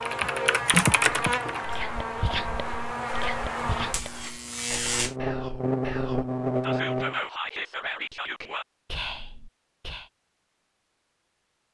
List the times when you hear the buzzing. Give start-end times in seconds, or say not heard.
0.0-7.2.